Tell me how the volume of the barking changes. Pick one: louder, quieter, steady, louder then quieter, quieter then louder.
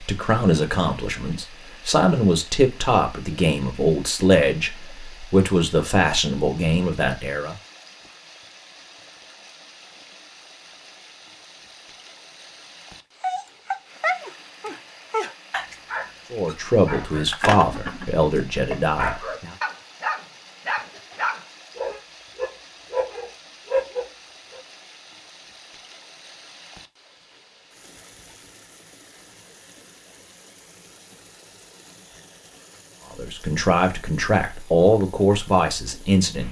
steady.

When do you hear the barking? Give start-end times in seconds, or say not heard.
13.2-24.6.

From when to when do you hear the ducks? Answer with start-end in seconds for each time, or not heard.
not heard.